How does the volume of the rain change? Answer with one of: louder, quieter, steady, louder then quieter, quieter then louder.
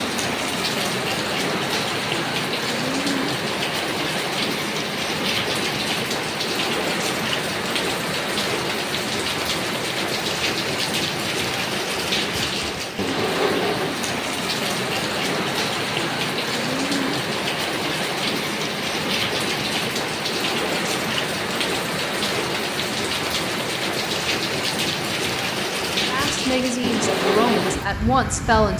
steady.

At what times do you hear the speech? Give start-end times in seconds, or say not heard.
26.1-28.7.